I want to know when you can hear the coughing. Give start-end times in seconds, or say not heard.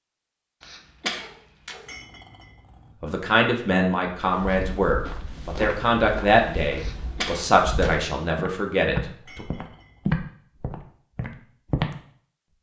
0.6-1.9, 6.8-8.1.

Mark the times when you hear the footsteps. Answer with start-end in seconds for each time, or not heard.
4.2-11.9.